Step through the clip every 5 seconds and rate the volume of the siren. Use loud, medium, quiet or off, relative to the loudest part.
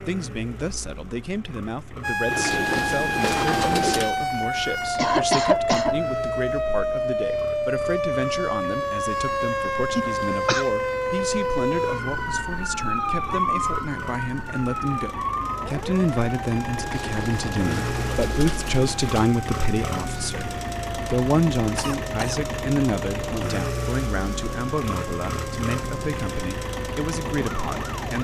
loud, loud, loud, medium, medium, medium.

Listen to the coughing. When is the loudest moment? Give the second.
5 s.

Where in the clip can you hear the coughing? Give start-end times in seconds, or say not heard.
5.0-6.0, 9.9-10.7, 21.8-22.4.